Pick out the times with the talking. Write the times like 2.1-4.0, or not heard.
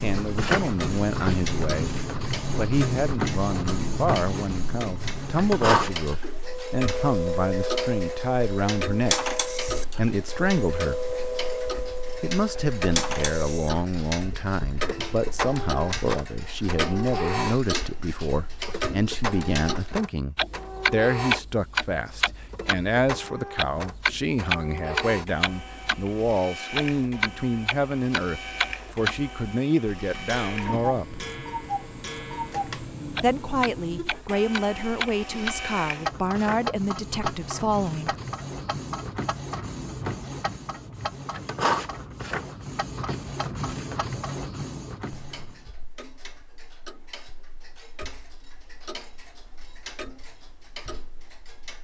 0.0-9.2, 9.9-11.1, 12.2-31.2, 33.2-38.1.